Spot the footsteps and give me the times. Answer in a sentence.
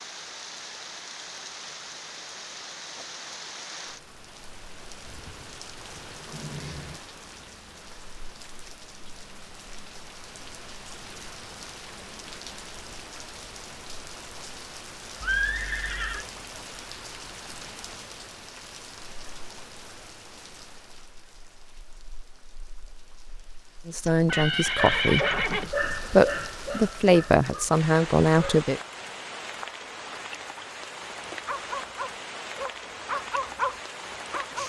You can't hear the footsteps here.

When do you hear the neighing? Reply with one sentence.
The neighing can be heard from 5.0 to 7.0 s, from 15.2 to 16.2 s and from 24.1 to 25.7 s.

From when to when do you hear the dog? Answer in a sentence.
You can hear the dog from 24.8 to 28.6 s and from 31.2 to 34.6 s.